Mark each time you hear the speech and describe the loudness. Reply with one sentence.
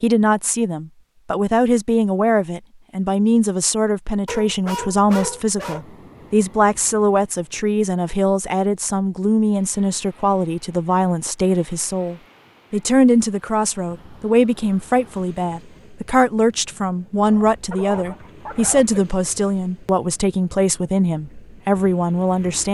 The speech can be heard from 0.0 to 22.6 s, at a steady volume.